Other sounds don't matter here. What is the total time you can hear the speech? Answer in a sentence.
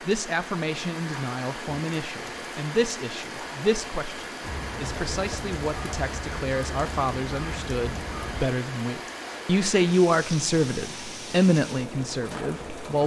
You can hear the speech for 13 seconds altogether.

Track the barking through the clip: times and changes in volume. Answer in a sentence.
You can't hear the barking here.